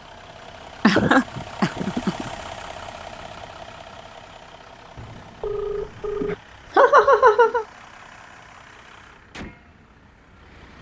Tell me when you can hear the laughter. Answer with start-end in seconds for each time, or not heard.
0.8-2.3, 6.2-7.7.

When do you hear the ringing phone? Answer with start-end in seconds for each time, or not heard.
5.0-6.3.